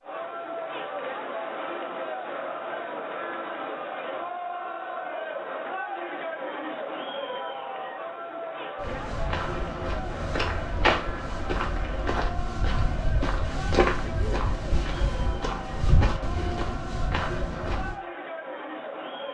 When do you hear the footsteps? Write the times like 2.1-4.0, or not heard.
8.8-17.9.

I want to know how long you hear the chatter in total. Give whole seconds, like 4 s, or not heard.
19 s.